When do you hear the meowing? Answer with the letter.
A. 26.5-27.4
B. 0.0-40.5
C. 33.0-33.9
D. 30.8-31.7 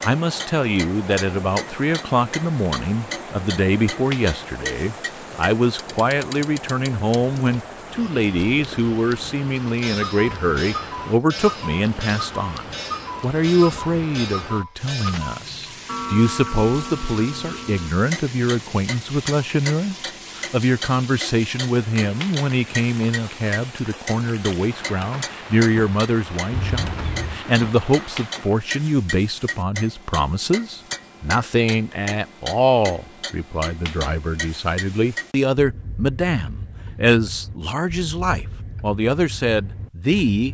A.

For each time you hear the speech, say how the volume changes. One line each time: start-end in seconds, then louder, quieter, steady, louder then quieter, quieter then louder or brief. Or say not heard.
0.0-40.5 steady.